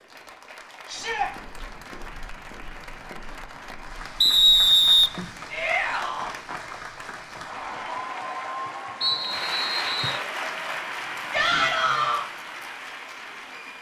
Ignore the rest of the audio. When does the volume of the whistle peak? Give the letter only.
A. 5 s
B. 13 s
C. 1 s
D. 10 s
A.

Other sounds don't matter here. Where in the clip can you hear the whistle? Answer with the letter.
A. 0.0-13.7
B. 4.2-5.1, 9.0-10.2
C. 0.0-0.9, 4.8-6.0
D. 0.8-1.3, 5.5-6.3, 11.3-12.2
B.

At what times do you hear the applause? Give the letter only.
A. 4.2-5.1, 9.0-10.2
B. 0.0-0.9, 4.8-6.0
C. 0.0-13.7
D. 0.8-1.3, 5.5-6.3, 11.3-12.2
C.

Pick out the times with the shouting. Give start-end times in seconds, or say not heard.
0.8-1.3, 5.5-6.3, 11.3-12.2.